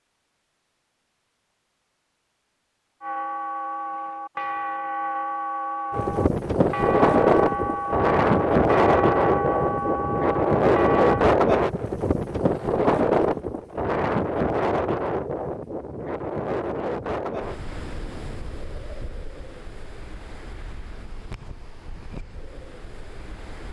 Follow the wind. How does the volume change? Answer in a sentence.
The volume of the wind goes down.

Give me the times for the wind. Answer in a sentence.
You can hear the wind from 5.9 to 23.6 s.